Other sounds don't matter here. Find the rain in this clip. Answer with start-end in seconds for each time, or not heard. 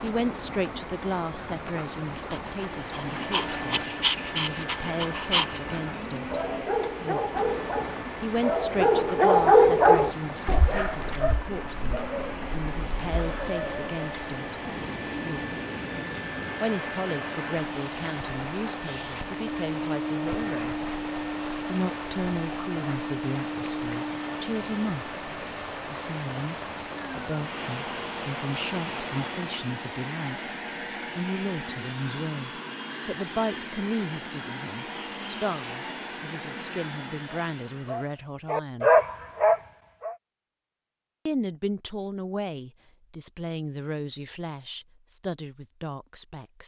0.0-29.6.